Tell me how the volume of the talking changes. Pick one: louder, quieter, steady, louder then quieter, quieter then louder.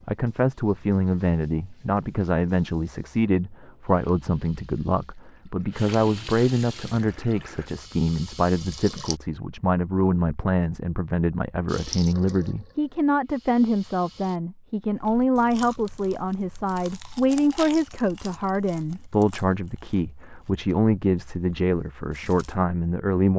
steady.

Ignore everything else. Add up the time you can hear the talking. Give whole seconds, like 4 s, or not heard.
23 s.